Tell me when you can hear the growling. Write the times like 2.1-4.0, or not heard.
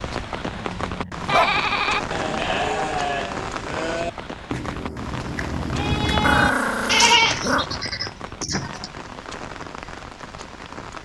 0.5-1.6, 6.2-7.7.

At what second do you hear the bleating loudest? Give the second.
7 s.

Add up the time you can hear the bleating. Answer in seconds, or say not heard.
8 s.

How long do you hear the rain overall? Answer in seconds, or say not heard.
11 s.